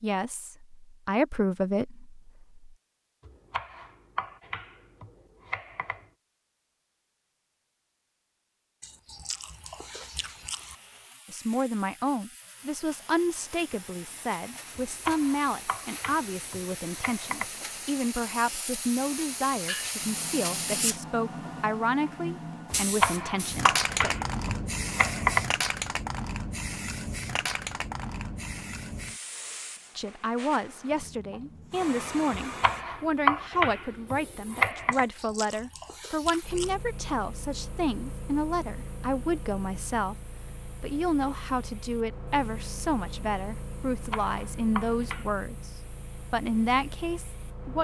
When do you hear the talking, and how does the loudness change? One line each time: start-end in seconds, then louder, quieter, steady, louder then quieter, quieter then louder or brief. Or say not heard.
0.0-2.6 brief
11.3-24.1 steady
29.9-45.7 steady
46.3-47.7 brief.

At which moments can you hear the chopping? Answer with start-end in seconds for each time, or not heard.
3.2-6.0, 14.8-17.4, 22.7-25.4, 32.3-35.0, 43.9-45.3.